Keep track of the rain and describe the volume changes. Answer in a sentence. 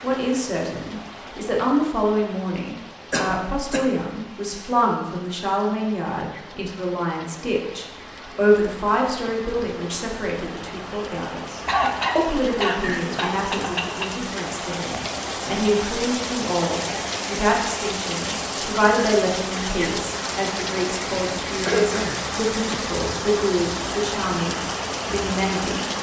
The volume of the rain goes up.